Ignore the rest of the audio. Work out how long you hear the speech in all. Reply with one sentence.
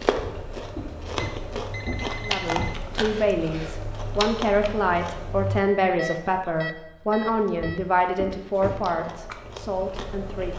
The speech can be heard for 8 seconds in total.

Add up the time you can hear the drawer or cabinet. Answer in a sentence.
You can hear the drawer or cabinet for 4 seconds altogether.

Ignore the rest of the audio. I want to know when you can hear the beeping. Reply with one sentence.
You can hear the beeping from 1.1 to 2.8 s and from 6.0 to 7.8 s.